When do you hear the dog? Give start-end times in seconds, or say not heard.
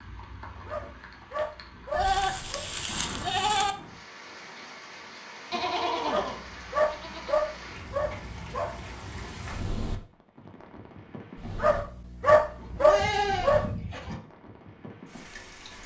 0.7-2.6, 6.0-8.8, 11.6-13.7.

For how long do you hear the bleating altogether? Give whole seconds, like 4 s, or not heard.
6 s.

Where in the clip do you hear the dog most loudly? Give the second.
12 s.